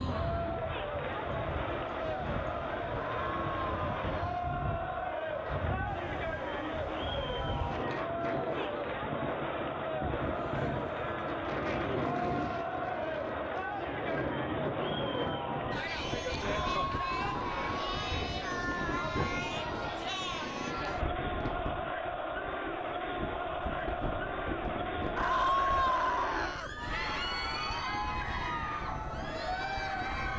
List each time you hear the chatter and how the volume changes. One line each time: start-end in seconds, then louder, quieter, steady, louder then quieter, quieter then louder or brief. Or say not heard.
0.0-30.3 steady.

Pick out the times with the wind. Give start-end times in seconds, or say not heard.
0.0-30.3.